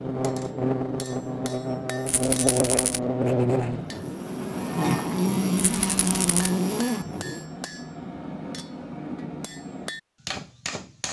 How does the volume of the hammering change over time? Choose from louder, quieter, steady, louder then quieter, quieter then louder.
steady.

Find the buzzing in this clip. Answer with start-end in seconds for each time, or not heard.
0.0-7.5.